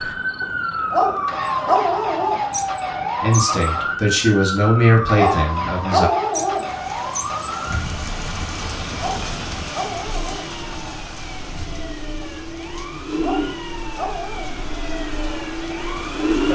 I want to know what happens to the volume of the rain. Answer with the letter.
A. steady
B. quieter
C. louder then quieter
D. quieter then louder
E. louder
B.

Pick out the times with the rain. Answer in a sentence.
The rain can be heard from 6.5 to 16.5 s.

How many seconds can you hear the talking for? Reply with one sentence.
The talking can be heard for 3 seconds in total.